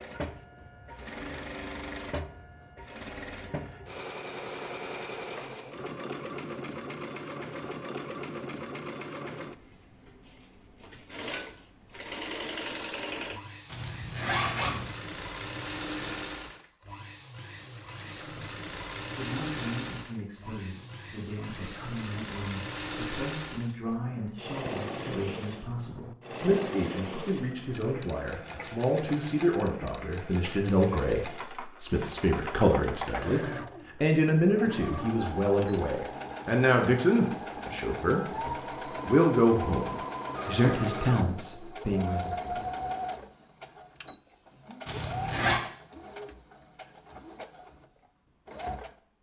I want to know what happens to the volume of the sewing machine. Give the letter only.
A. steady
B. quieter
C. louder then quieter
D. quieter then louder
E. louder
A.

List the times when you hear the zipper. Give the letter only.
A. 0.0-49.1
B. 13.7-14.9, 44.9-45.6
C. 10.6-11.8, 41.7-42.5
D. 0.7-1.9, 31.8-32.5
B.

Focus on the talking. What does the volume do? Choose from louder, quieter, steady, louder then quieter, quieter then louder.
louder.